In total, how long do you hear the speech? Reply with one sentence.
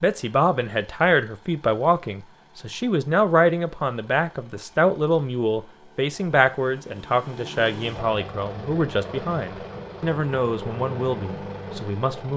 You can hear the speech for 12 seconds altogether.